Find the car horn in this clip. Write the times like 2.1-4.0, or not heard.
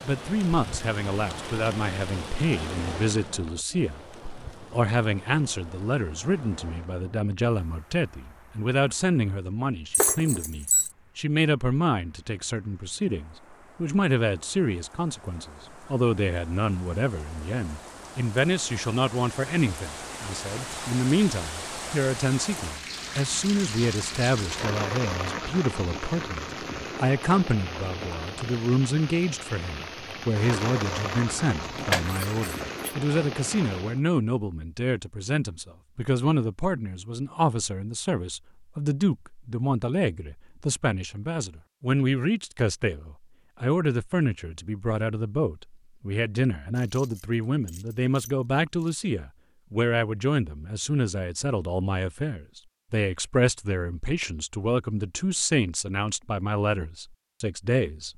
not heard.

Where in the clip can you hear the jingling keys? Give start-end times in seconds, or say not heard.
9.9-10.9, 31.8-33.0, 46.8-49.0.